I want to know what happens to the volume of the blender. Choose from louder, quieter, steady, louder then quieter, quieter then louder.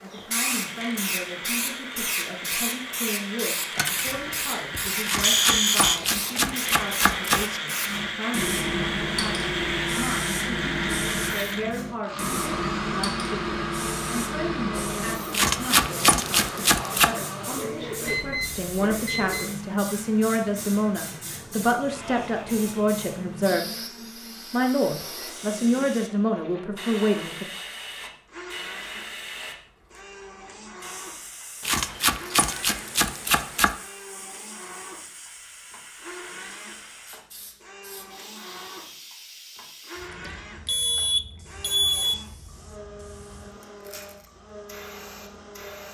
quieter.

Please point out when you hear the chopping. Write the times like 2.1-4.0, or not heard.
5.0-7.6, 15.3-17.1, 31.6-33.8.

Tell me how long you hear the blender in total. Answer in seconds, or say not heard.
46 s.